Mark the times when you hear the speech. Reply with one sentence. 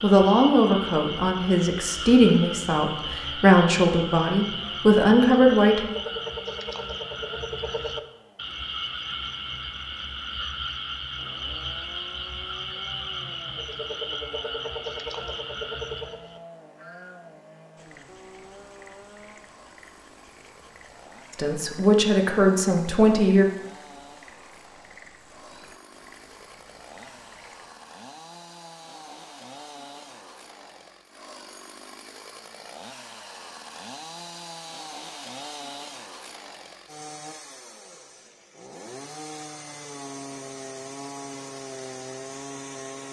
You can hear the speech from 0.0 to 5.8 s and from 21.4 to 23.4 s.